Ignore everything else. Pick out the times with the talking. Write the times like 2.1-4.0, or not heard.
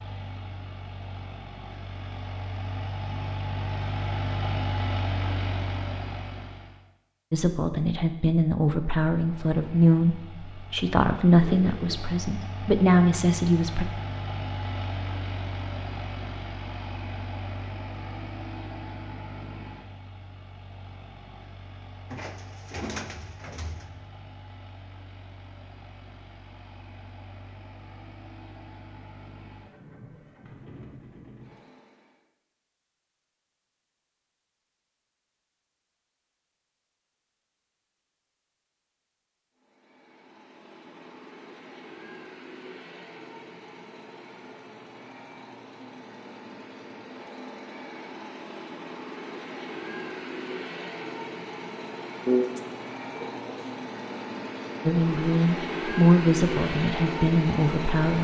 7.3-13.8, 54.9-58.1.